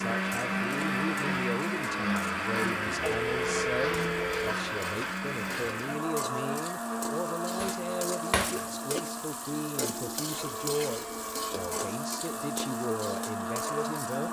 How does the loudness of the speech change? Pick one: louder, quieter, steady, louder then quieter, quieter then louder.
steady.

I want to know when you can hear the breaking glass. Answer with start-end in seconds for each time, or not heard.
7.5-8.9.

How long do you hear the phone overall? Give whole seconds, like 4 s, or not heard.
3 s.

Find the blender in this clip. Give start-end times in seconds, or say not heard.
0.0-14.2.